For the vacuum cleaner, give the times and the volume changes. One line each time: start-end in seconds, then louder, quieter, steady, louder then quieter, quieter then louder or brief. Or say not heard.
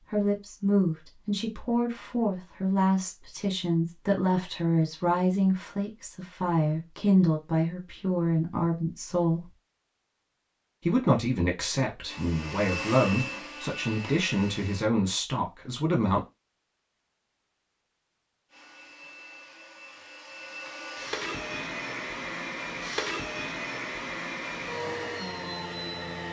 12.1-14.9 brief
18.5-26.2 louder.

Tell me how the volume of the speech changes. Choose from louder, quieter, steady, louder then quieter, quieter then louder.
steady.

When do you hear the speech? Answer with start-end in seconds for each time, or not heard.
0.1-9.5, 10.8-16.2.